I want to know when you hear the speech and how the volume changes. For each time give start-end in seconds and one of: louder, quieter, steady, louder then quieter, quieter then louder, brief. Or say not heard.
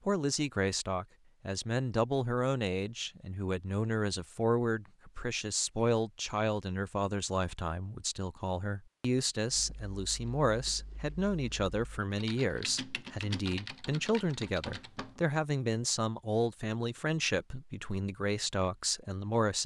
0.1-19.6 steady.